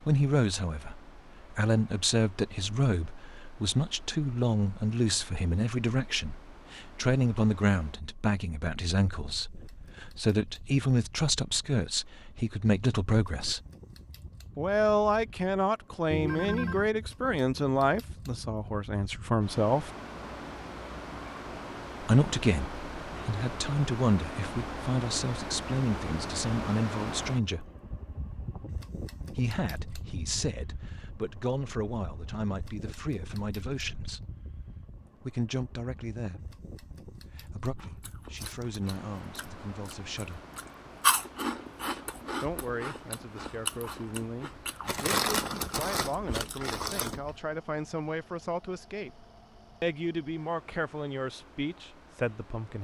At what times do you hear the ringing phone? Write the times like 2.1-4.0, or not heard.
16.1-16.9.